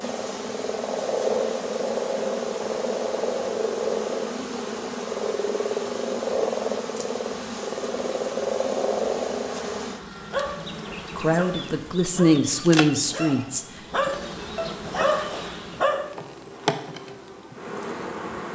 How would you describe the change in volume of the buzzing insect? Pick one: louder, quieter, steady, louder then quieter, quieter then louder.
steady.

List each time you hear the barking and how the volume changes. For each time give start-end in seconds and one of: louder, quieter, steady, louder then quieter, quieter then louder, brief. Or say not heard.
10.3-16.1 louder.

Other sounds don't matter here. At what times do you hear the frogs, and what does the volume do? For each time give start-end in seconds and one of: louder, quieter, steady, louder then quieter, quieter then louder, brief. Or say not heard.
0.0-9.8 steady.